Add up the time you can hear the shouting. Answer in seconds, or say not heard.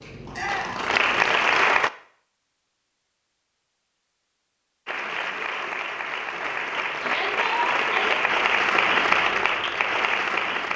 2 s.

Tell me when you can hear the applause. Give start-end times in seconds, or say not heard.
0.0-1.9, 4.8-10.7.